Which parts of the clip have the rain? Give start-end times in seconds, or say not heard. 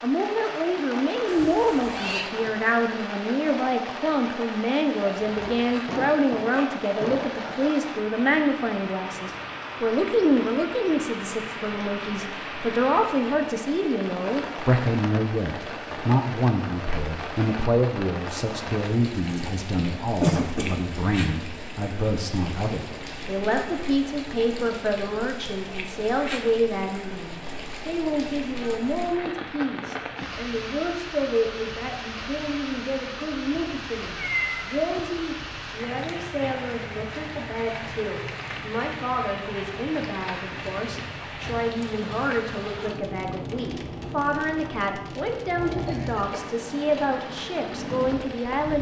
0.0-48.7.